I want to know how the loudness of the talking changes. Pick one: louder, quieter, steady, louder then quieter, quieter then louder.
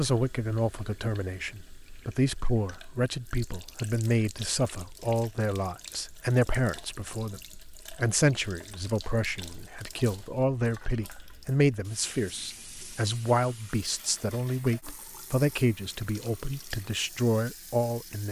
steady.